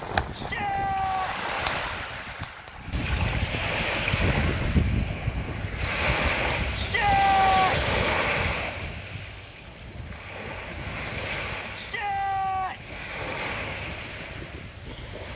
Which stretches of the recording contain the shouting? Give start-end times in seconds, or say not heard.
0.3-1.5, 6.8-7.9, 11.7-12.9.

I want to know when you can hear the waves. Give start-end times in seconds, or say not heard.
0.0-15.3.